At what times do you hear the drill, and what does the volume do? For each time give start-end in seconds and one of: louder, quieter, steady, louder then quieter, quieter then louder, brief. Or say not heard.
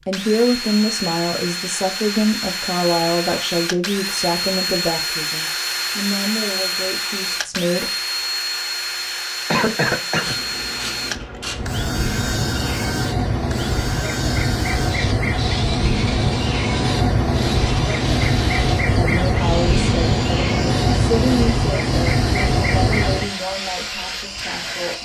0.0-25.0 quieter.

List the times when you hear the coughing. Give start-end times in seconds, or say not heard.
9.5-10.4.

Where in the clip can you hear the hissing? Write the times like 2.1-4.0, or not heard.
10.2-25.0.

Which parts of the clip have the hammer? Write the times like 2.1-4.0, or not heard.
not heard.